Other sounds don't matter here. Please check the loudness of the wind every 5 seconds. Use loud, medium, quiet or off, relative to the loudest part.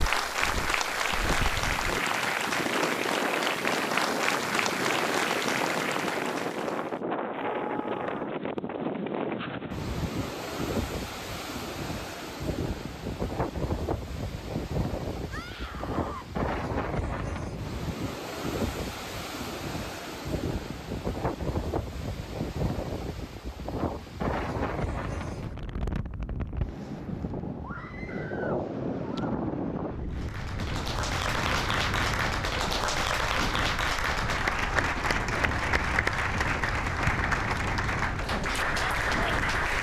loud, loud, loud, loud, loud, loud, medium, medium.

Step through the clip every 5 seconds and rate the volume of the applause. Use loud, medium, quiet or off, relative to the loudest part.
loud, loud, off, off, off, off, loud, loud.